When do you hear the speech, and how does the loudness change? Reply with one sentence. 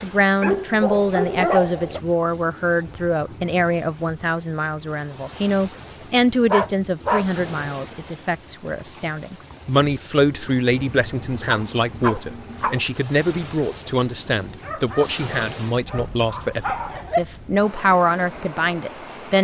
You can hear the speech from 0.0 to 19.3 s, at a steady volume.